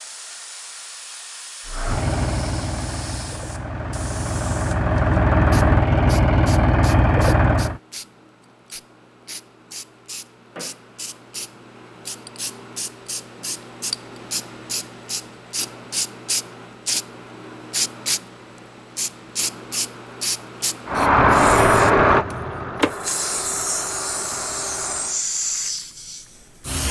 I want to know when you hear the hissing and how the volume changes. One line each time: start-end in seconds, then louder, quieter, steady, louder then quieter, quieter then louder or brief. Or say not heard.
0.0-26.8 louder.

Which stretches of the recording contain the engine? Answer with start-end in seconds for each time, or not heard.
1.6-7.8, 20.9-25.2.